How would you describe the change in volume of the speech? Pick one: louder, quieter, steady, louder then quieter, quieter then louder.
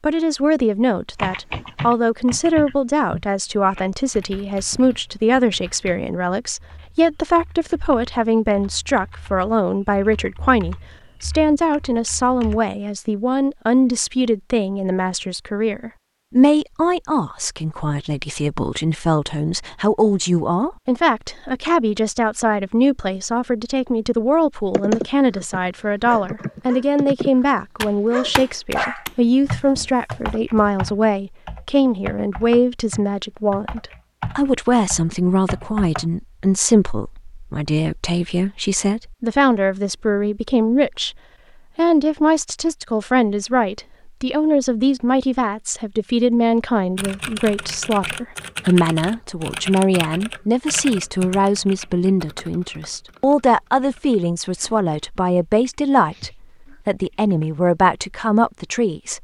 steady.